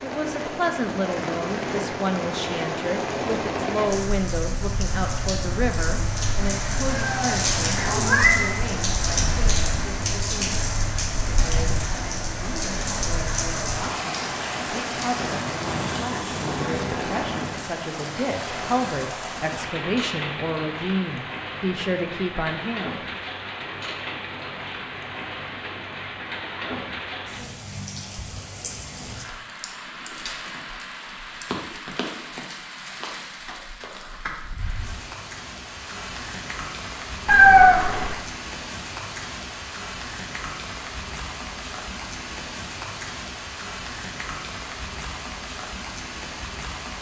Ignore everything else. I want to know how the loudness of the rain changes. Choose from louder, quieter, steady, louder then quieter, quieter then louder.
quieter.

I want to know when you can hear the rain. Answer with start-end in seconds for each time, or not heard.
0.0-46.9.